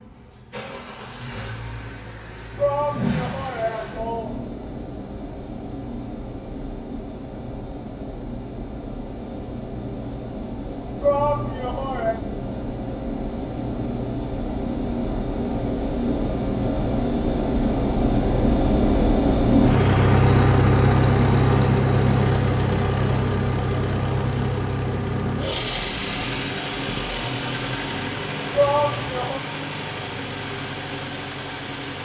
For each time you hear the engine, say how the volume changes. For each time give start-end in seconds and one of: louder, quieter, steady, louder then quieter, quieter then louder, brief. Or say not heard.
0.0-32.0 louder then quieter.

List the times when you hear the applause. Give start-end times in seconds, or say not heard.
not heard.